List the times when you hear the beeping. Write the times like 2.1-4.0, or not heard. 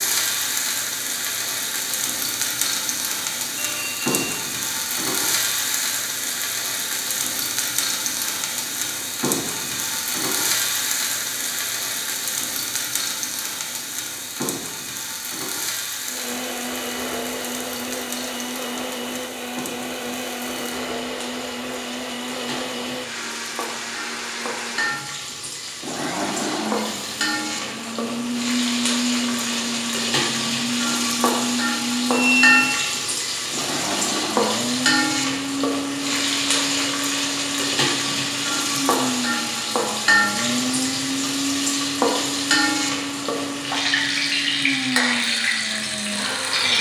3.5-4.3, 32.1-32.7.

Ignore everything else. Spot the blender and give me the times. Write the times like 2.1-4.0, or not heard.
16.1-46.7.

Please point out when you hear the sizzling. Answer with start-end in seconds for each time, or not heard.
0.0-46.7.